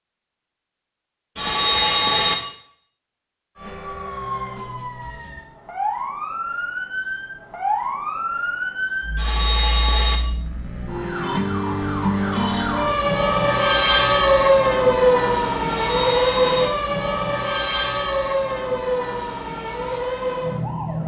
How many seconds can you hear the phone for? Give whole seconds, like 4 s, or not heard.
3 s.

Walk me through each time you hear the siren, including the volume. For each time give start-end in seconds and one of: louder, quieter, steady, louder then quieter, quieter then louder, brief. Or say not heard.
3.5-21.0 louder then quieter.